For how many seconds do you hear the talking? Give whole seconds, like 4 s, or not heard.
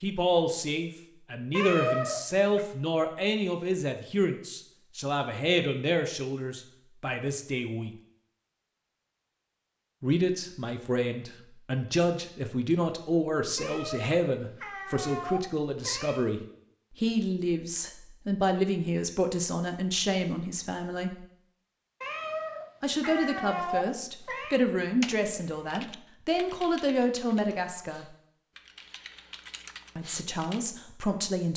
26 s.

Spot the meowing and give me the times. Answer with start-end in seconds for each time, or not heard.
1.5-2.6, 13.6-16.3, 22.0-24.6.